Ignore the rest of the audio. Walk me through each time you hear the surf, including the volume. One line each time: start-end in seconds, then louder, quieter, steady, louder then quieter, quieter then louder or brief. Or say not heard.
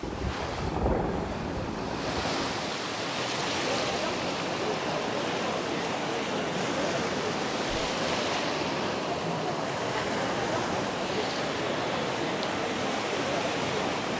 0.0-14.1 steady.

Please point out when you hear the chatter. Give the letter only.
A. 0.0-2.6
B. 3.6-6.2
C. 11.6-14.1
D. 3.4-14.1
D.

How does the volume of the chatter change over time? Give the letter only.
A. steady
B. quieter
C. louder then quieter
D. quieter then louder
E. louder
A.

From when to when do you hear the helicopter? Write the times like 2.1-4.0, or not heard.
0.0-2.6.